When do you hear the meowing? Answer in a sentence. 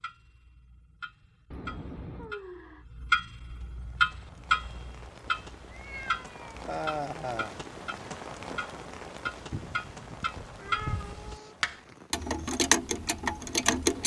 The meowing can be heard from 1.5 to 2.4 s, from 5.7 to 6.7 s and from 10.6 to 11.6 s.